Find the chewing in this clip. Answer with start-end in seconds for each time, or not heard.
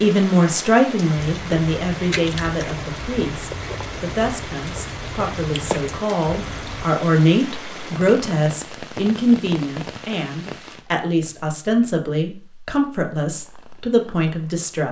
1.2-6.8.